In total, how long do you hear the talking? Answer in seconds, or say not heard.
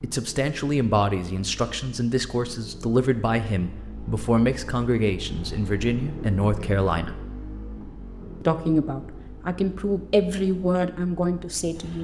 11 s.